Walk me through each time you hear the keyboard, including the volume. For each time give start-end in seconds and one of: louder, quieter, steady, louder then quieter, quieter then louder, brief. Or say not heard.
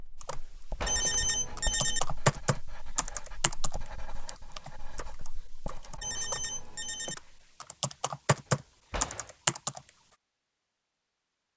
0.2-9.9 quieter then louder.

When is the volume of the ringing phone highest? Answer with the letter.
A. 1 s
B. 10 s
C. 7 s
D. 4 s
A.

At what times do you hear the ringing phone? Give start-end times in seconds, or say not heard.
0.8-2.0, 6.0-7.2.